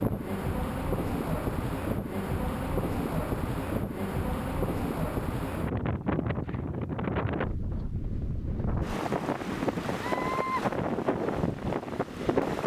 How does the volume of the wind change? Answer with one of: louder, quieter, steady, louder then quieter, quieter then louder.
steady.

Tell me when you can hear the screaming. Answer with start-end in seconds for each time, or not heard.
10.0-10.7.